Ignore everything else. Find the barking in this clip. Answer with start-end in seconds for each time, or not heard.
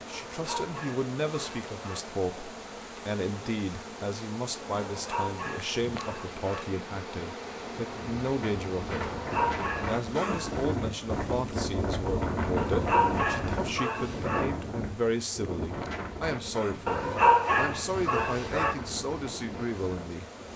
0.3-2.0, 4.8-6.7, 9.0-10.7, 12.6-14.4, 16.9-18.8.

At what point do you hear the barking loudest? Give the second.
17 s.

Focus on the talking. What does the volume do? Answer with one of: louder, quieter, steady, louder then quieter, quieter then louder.
steady.